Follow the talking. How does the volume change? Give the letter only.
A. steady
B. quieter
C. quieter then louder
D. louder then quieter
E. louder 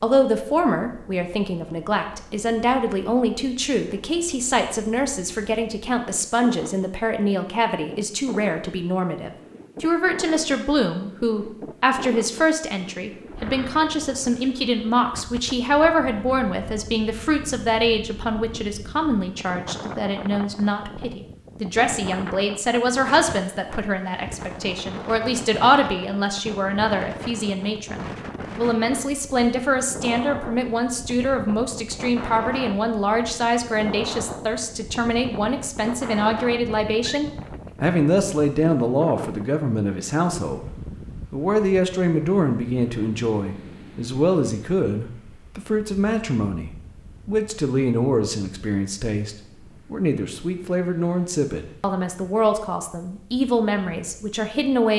A.